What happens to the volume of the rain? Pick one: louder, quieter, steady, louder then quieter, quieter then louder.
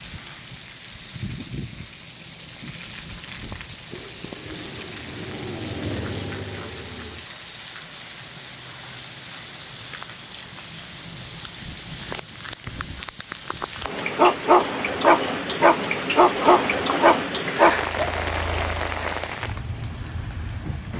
louder.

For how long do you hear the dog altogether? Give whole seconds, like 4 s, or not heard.
4 s.